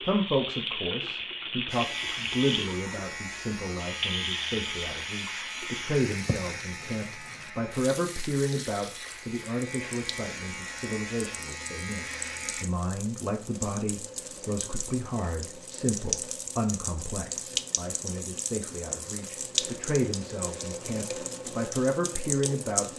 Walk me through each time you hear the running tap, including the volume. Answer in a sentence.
You can hear the running tap from 0.0 to 22.9 s, getting quieter then louder.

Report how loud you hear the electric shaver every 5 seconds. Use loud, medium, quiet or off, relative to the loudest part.
loud, loud, loud, off, off.